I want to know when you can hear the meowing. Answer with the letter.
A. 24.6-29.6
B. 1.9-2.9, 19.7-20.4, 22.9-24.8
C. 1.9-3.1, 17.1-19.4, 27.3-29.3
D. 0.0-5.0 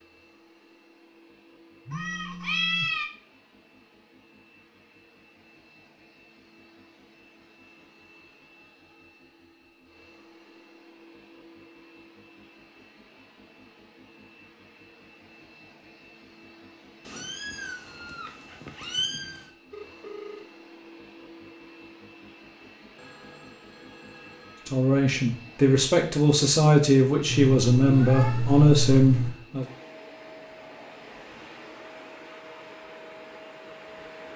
C.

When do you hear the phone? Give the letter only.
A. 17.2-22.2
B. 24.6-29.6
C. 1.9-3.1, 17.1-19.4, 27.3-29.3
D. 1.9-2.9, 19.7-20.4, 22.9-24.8
D.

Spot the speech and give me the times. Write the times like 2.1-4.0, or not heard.
24.6-29.6.